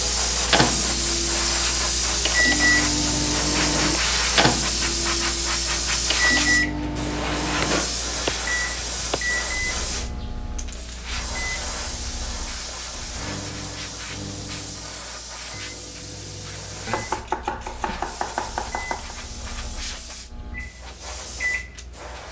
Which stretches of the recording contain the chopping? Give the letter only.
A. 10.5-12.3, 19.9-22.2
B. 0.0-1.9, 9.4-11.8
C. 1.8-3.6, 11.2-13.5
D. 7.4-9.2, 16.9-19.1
D.